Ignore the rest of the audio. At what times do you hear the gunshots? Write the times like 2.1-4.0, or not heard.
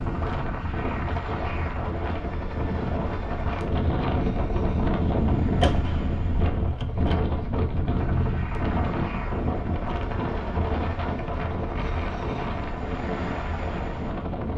5.6-7.2.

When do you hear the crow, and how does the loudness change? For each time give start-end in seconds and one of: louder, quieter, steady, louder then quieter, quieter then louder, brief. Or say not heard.
not heard.